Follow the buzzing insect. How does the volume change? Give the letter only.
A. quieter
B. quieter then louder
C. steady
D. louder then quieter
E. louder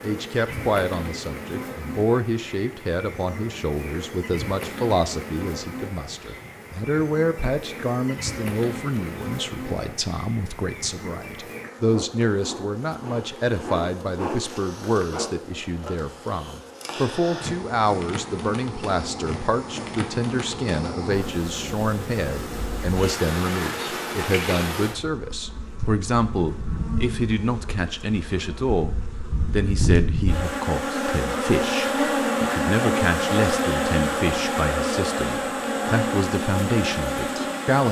E.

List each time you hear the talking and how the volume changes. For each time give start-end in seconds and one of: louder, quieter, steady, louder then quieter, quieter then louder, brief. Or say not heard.
0.0-37.8 steady.